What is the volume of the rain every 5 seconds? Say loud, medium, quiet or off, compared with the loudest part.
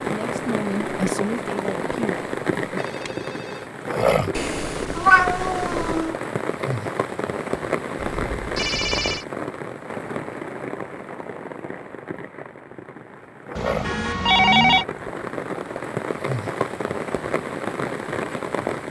loud, loud, medium, loud.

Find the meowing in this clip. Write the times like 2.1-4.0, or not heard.
4.3-6.2.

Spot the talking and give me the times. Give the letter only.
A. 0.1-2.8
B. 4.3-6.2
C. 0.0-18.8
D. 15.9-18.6
A.